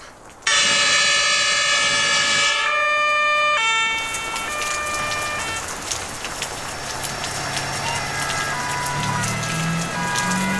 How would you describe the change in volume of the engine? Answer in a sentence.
The volume of the engine goes up.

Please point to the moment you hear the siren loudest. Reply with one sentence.
The loudest moment of the siren is at 1 second.